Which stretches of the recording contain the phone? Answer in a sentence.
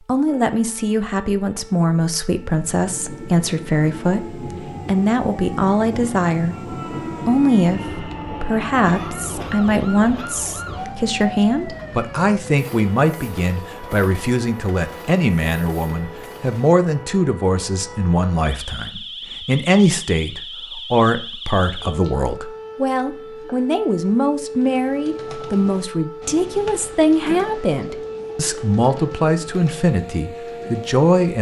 You can't hear the phone here.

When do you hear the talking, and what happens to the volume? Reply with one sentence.
The talking can be heard from 0.1 to 6.5 s, at a steady volume; briefly from 7.2 to 7.8 s; and from 8.4 to 31.3 s, at a steady volume.